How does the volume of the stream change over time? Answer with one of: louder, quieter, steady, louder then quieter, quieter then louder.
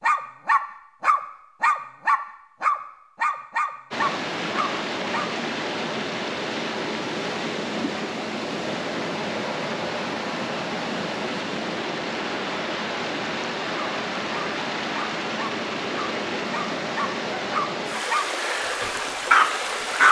steady.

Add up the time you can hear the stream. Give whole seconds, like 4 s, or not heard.
16 s.